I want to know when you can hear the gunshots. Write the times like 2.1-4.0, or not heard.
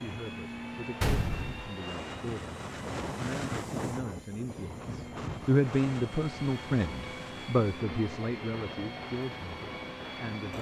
1.0-1.6.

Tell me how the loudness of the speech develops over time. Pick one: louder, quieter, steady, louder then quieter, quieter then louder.
louder then quieter.